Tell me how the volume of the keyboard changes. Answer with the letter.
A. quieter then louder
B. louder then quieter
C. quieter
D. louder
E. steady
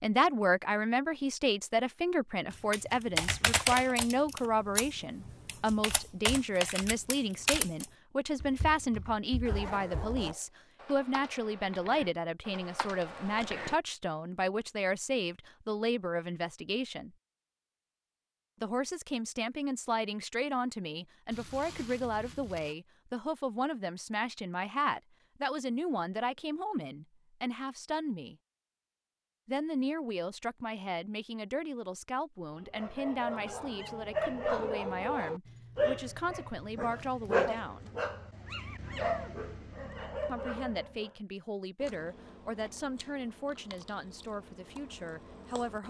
C.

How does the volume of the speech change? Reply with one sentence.
The volume of the speech goes down.